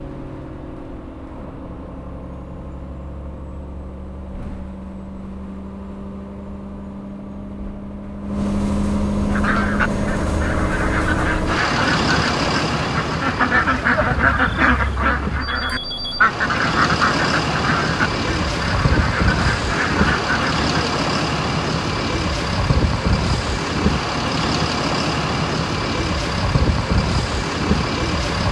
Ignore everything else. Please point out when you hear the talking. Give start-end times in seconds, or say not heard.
not heard.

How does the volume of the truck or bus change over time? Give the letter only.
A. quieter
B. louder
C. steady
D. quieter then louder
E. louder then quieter
B.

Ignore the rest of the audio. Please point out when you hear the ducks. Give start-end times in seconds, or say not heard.
9.3-21.0.